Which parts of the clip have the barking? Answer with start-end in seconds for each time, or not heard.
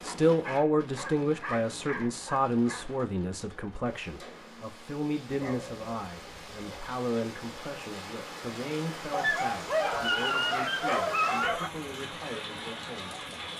0.4-2.9, 5.3-7.0, 9.1-11.7.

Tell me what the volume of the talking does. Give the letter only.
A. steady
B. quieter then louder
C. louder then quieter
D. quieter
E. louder
D.